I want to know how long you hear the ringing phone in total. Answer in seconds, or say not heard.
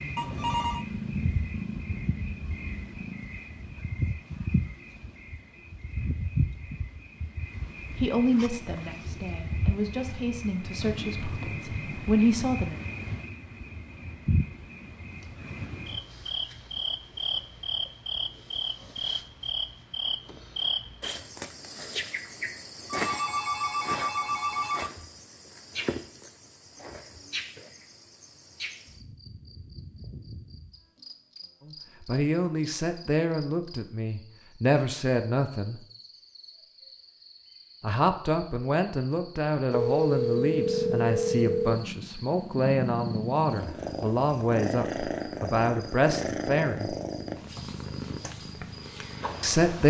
5 s.